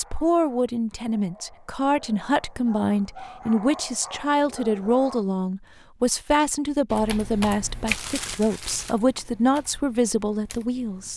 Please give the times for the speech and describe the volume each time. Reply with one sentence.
You can hear the speech from 0.0 to 11.1 s, at a steady volume.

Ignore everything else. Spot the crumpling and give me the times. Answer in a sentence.
The crumpling can be heard from 7.8 to 8.9 s.